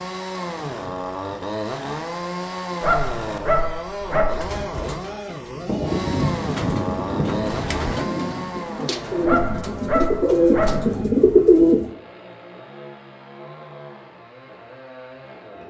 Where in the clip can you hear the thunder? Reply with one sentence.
The thunder can be heard from 5.7 to 8.4 s.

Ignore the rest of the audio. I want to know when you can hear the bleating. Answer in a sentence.
You can't hear the bleating here.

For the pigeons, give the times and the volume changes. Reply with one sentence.
The pigeons can be heard from 4.3 to 11.9 s, getting louder.